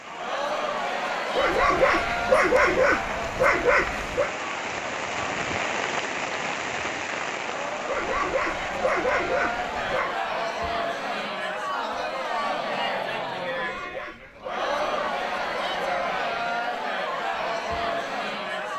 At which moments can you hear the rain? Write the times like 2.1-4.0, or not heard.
0.0-10.0.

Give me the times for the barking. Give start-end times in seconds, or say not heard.
1.4-4.3, 7.8-10.2, 13.5-16.1.